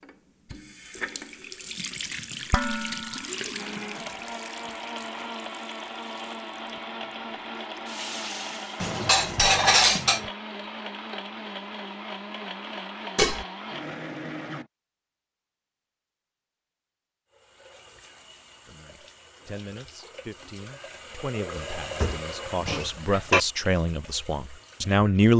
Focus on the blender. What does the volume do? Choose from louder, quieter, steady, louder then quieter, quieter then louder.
steady.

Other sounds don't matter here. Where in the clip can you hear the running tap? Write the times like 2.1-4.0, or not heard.
0.0-8.8, 17.3-25.3.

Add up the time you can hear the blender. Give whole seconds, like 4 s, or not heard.
11 s.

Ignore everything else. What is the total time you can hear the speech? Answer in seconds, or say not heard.
7 s.